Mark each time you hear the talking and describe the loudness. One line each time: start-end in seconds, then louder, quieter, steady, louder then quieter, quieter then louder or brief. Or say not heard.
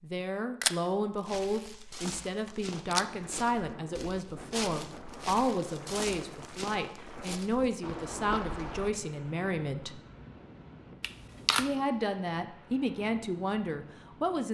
0.0-10.0 steady
11.6-14.5 brief.